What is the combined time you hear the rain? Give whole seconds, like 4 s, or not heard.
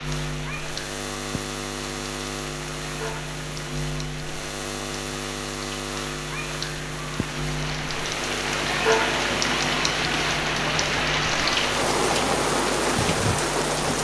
14 s.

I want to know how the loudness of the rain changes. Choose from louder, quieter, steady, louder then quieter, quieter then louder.
louder.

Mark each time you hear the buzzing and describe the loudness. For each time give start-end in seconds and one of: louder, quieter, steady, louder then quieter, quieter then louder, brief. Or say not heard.
0.0-13.9 steady.